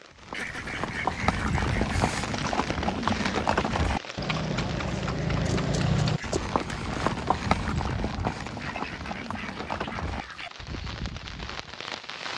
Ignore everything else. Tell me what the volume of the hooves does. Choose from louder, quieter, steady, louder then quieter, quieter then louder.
quieter.